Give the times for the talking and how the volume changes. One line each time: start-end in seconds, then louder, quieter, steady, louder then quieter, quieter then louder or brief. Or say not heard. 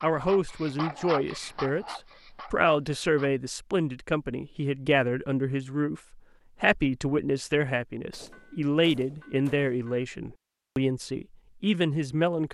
0.0-12.4 steady.